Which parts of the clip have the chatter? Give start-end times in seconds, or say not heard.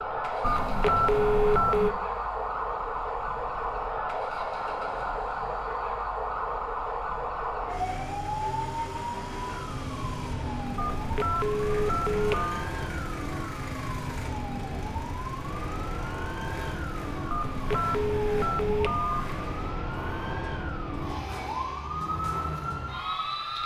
not heard.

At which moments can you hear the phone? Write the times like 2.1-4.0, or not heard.
0.4-1.9, 10.8-12.6, 17.3-19.4.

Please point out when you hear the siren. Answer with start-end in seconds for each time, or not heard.
0.0-23.6.